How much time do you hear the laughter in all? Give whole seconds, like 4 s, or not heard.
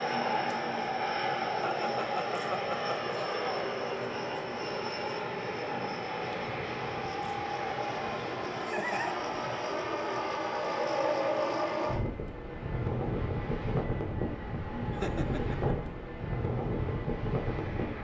3 s.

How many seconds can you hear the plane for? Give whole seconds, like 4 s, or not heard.
18 s.